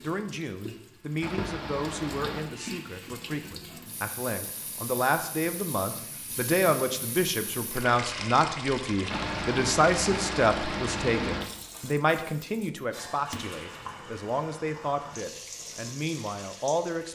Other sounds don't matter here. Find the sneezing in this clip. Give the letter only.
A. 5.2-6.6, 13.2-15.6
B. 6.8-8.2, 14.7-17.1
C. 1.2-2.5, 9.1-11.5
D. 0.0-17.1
C.